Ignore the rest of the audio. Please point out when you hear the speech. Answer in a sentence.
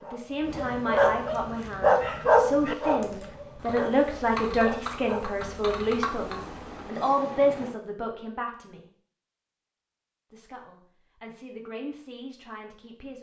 The speech can be heard from 0.0 to 8.8 s and from 10.3 to 13.1 s.